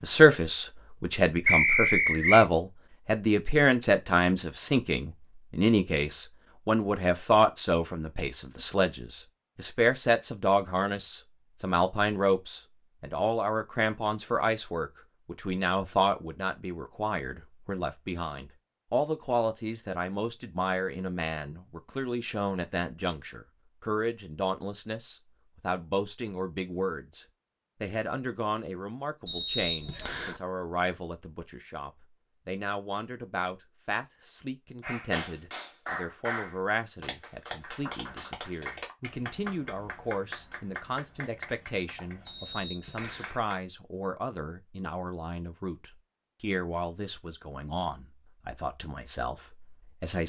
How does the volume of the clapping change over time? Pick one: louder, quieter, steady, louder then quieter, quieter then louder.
quieter.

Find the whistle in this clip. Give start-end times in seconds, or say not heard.
1.4-2.5, 29.2-30.4, 42.2-43.4.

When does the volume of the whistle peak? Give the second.
2 s.